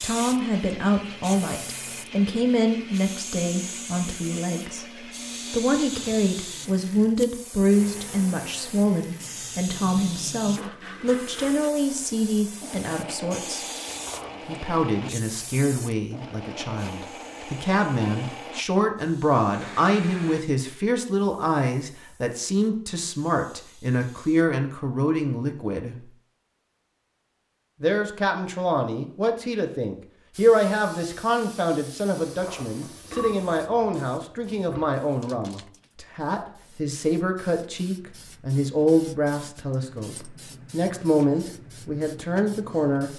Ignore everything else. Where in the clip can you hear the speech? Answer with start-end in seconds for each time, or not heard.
0.0-4.8, 5.5-13.7, 14.4-26.1, 27.8-43.1.